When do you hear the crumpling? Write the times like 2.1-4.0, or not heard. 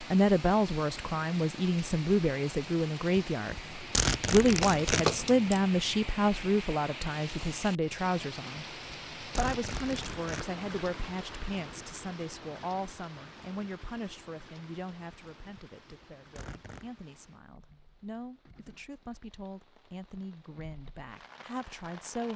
4.6-5.6.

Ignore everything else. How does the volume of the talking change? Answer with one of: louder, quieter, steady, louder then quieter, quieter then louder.
quieter.